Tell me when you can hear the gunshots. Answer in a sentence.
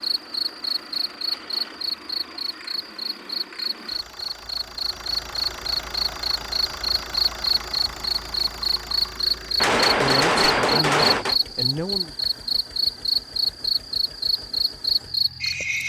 You can hear the gunshots from 9.6 to 11.3 s.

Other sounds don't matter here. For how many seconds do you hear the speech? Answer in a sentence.
You can hear the speech for 2 seconds altogether.